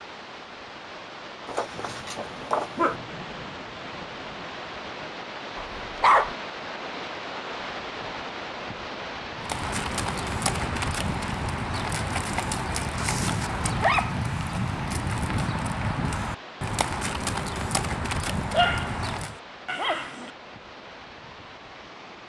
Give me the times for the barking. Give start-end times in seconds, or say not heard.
1.4-3.0, 5.5-6.3, 12.9-14.2, 18.5-19.1, 19.6-20.3.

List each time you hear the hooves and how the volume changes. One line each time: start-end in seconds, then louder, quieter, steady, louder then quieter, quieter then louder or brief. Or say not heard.
9.4-19.4 steady.